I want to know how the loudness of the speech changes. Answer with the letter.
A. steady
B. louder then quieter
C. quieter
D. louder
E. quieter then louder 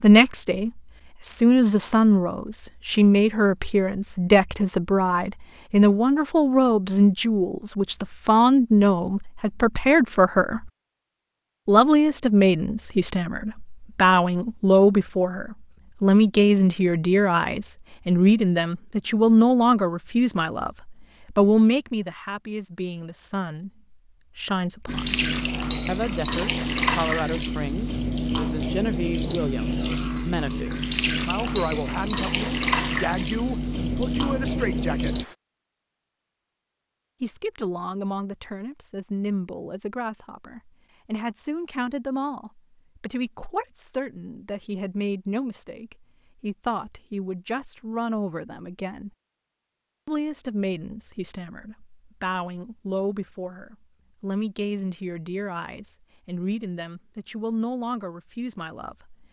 C.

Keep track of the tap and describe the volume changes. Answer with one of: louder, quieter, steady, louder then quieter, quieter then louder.
steady.